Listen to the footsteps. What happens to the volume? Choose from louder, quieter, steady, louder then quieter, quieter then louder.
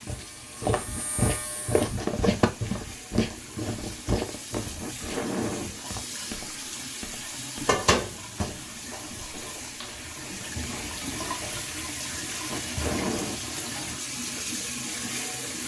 quieter.